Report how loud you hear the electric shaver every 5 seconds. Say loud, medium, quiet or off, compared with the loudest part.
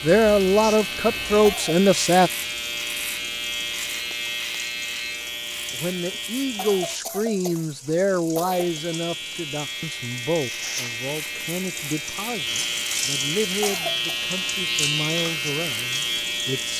loud, medium, loud, loud.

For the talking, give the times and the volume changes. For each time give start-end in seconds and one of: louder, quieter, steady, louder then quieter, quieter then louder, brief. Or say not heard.
0.0-2.3 brief
5.7-16.7 quieter.